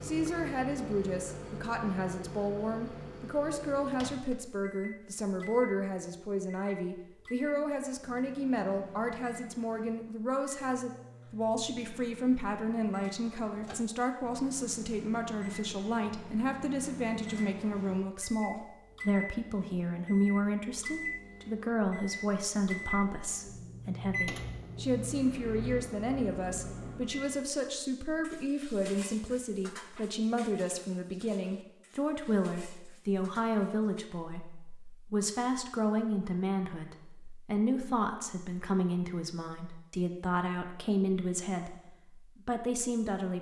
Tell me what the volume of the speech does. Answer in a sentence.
The volume of the speech stays about the same.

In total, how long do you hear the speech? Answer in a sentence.
The speech can be heard for 43 seconds in total.